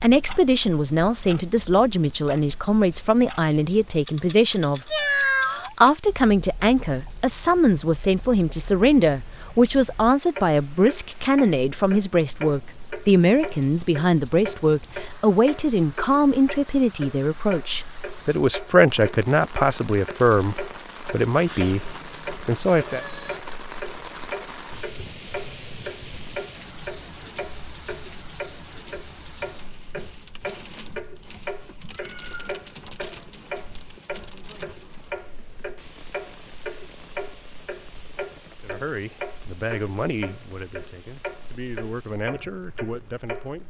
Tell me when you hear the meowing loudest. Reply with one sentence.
The volume of the meowing peaks at 5 seconds.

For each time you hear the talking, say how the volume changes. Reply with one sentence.
The talking can be heard from 0.0 to 23.1 s, at a steady volume; and from 38.6 to 43.6 s, getting quieter then louder.